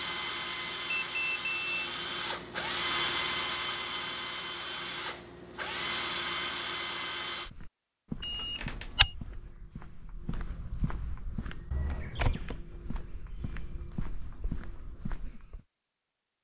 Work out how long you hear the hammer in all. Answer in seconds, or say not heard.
not heard.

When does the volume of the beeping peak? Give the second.
1 s.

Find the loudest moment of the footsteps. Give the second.
9 s.